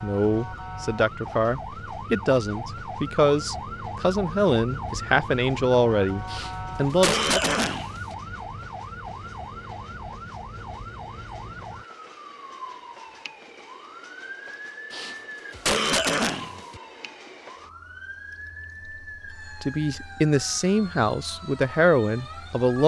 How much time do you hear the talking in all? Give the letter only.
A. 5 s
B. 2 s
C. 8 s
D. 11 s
D.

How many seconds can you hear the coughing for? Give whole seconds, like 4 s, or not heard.
4 s.